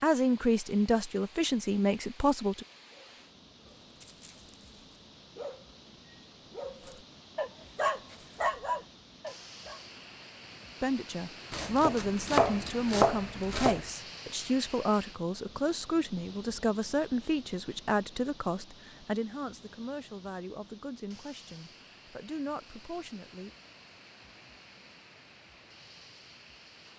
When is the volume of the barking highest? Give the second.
9 s.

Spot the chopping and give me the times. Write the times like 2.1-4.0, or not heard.
11.5-13.8.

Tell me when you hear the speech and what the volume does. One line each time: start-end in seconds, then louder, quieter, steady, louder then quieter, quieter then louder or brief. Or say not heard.
0.0-2.6 brief
10.8-23.5 quieter.